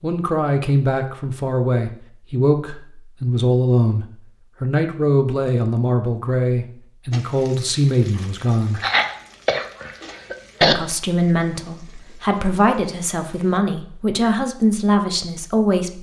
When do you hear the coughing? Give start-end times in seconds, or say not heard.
8.8-10.8.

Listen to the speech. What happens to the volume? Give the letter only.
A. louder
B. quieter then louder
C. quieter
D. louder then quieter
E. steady
E.